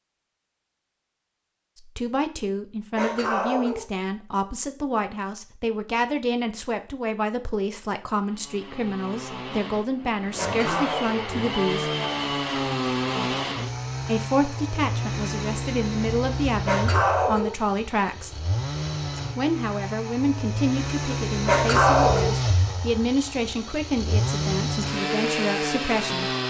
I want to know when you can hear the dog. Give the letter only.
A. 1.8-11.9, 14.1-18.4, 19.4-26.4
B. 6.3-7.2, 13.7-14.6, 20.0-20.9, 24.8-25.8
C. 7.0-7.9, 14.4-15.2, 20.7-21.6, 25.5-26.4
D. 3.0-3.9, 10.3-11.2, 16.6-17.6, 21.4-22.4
D.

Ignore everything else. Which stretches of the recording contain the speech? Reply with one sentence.
You can hear the speech from 1.8 to 11.9 s, from 14.1 to 18.4 s and from 19.4 to 26.4 s.